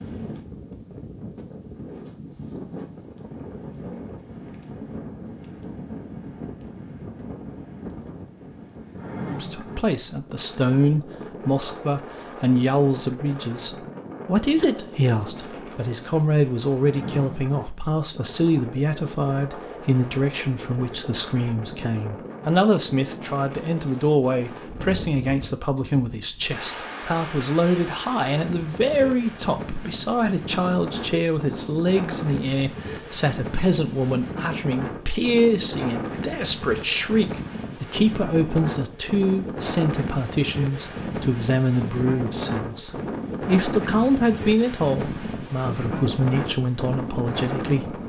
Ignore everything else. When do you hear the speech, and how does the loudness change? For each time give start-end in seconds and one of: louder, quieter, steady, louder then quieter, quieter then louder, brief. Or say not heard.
9.2-48.0 steady.